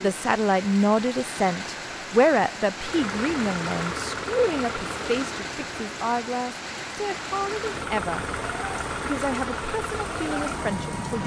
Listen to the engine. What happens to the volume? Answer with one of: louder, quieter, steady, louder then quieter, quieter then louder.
quieter then louder.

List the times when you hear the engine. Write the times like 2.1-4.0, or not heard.
2.8-11.2.